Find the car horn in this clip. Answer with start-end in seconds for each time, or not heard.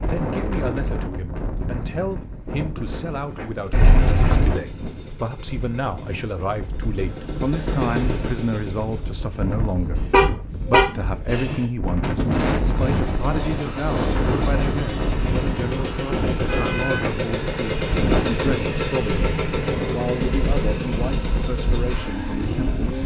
3.7-4.5, 10.1-11.6, 16.4-17.2.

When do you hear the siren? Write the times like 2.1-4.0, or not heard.
not heard.